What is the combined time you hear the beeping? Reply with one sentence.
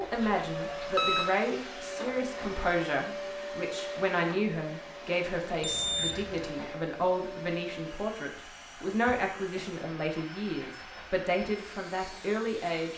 You can hear the beeping for 3 seconds altogether.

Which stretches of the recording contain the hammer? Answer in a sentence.
The hammer can't be heard in this clip.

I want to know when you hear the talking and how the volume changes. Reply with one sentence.
You can hear the talking from 0.0 to 12.9 s, at a steady volume.